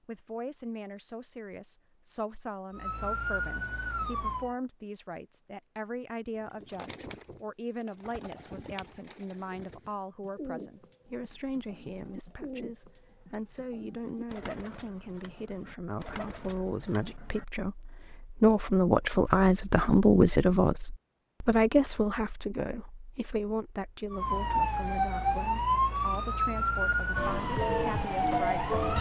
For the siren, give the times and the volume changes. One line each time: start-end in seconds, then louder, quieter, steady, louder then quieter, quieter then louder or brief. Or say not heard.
2.7-4.5 brief
24.1-28.9 steady.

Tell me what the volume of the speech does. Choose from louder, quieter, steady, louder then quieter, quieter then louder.
louder then quieter.